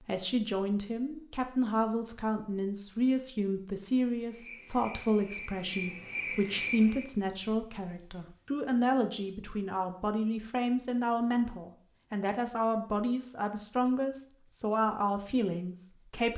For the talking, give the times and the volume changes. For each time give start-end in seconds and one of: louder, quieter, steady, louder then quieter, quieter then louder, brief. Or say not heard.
0.0-16.3 steady.